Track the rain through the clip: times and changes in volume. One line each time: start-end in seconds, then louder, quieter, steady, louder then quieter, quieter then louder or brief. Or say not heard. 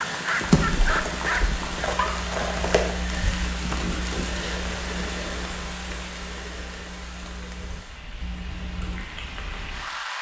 0.0-10.1 quieter.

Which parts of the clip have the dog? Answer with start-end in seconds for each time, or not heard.
0.0-2.3.